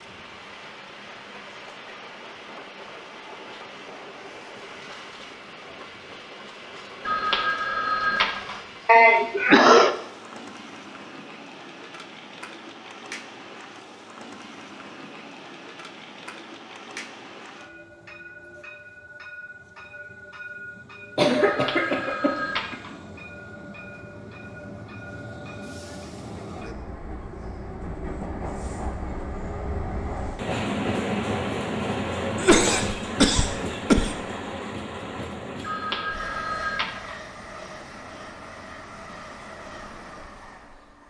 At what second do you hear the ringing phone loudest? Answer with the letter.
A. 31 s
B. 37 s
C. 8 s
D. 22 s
C.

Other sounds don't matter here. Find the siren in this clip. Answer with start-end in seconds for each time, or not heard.
not heard.